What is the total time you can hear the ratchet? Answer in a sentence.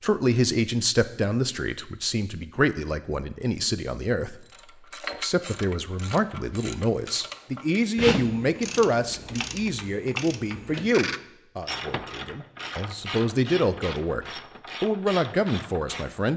You can hear the ratchet for 12 seconds altogether.